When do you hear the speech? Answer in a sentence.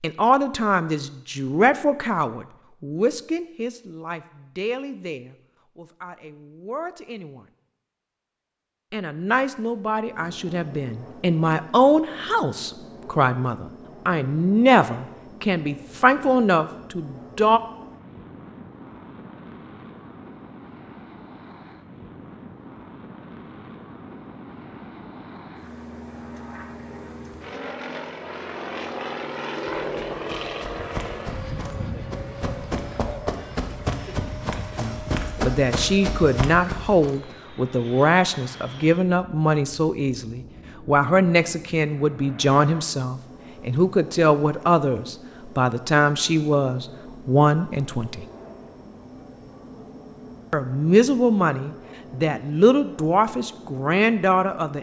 The speech can be heard from 0.0 to 7.5 s, from 8.9 to 17.6 s, from 34.8 to 48.2 s and from 50.5 to 54.7 s.